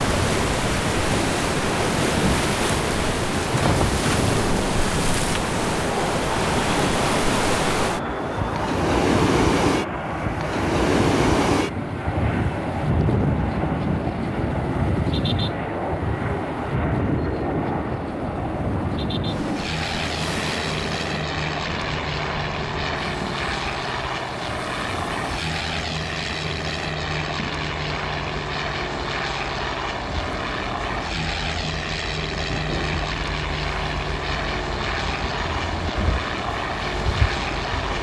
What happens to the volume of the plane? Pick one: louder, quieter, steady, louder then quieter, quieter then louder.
steady.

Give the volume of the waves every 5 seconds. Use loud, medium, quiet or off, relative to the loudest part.
loud, loud, loud, medium, medium, quiet, quiet, medium.